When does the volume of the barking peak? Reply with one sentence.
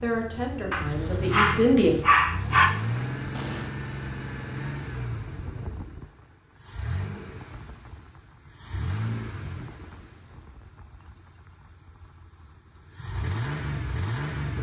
The loudest moment of the barking is at 2 seconds.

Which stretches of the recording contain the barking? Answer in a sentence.
The barking can be heard from 0.7 to 2.7 s.